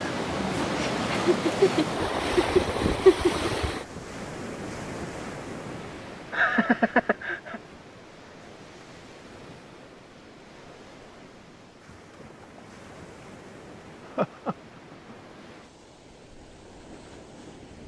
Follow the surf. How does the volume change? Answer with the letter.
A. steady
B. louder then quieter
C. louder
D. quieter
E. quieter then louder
D.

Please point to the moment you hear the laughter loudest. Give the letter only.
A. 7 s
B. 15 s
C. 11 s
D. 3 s
D.